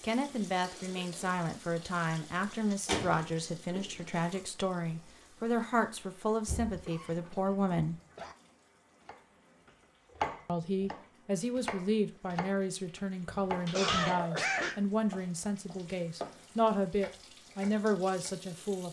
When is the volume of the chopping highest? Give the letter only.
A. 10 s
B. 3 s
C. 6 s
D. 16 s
A.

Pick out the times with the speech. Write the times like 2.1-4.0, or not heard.
0.0-8.0, 10.4-18.8.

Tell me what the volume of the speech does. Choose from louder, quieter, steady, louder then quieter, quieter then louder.
steady.